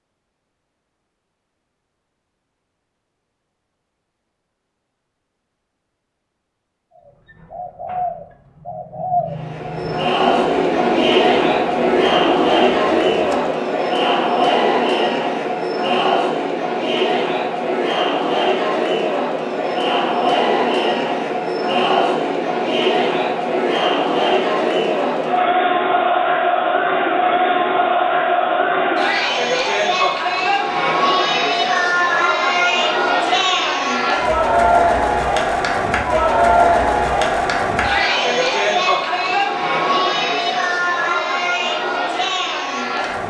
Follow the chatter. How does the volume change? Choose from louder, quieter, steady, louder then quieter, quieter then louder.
steady.